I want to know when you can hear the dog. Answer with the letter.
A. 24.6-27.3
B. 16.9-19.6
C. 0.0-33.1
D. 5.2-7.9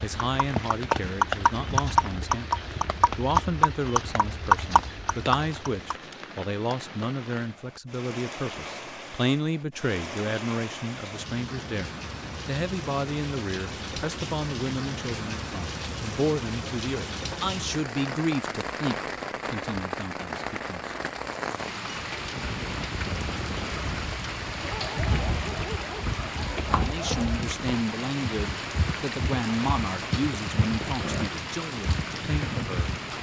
A.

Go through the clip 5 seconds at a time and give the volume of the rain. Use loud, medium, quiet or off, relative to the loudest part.
loud, medium, loud, loud, loud, loud, loud.